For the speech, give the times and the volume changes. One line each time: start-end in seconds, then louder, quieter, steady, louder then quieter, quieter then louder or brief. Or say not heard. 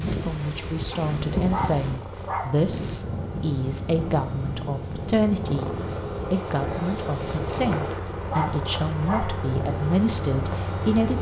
0.0-11.1 steady.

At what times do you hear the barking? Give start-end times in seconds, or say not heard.
0.9-2.6, 7.7-9.4.